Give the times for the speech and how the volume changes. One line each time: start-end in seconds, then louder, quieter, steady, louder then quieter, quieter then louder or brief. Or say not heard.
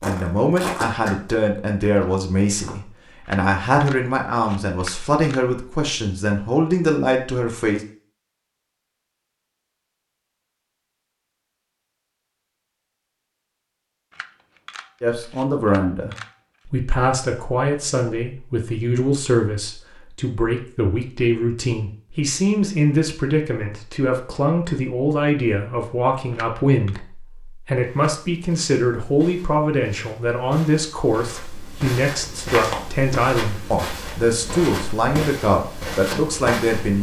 0.0-7.8 steady
15.0-36.9 steady.